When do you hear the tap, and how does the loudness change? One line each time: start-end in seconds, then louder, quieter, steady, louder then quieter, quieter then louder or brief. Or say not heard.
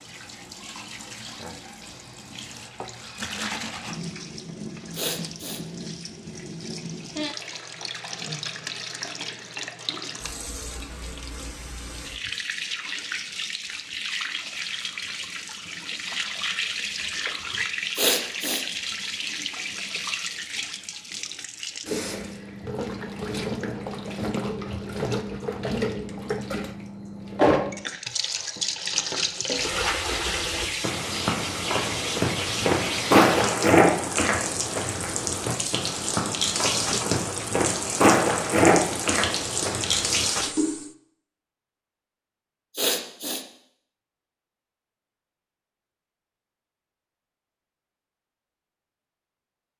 0.0-40.9 louder.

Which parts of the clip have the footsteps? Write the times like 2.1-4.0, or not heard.
30.8-40.3.